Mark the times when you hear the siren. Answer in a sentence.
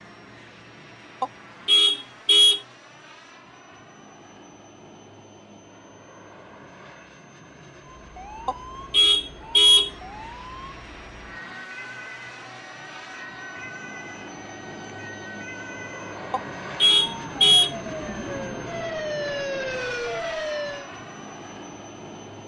The siren can be heard from 8.0 to 20.9 s.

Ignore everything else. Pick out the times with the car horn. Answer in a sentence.
You can hear the car horn from 1.2 to 2.6 s, from 8.4 to 9.9 s and from 16.3 to 17.7 s.